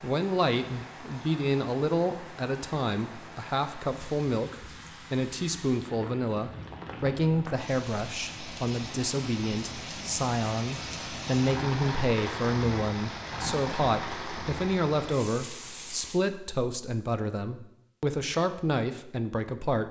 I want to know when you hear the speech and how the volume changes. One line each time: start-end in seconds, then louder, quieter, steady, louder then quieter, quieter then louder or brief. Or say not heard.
0.0-19.8 steady.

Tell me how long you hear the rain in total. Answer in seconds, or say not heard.
16 s.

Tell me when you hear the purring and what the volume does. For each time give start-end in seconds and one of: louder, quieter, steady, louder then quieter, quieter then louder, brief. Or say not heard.
not heard.